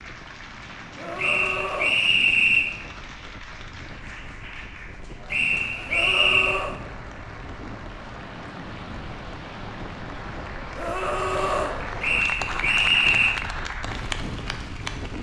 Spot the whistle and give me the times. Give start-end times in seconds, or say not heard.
1.1-2.7, 5.3-6.6, 12.0-13.3.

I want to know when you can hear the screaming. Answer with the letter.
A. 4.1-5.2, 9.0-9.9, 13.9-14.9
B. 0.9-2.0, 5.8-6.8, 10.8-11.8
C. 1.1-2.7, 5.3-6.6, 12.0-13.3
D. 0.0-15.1
B.